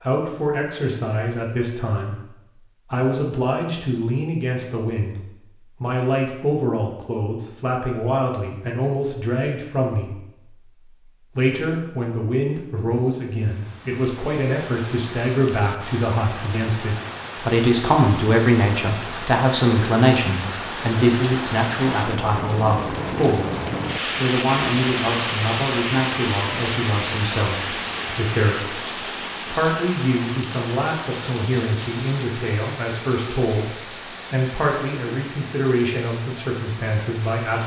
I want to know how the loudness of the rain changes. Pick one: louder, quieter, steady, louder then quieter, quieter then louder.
louder then quieter.